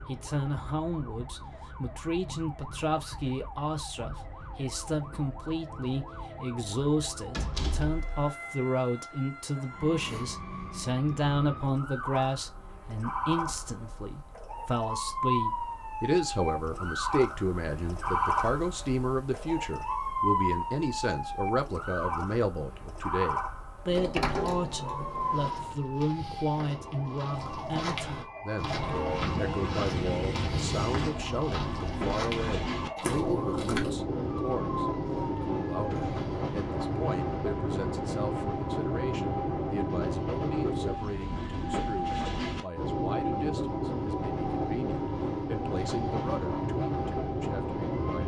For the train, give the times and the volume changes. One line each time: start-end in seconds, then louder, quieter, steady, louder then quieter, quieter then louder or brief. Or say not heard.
28.6-48.2 steady.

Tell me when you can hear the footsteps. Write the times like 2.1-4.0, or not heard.
25.1-33.9.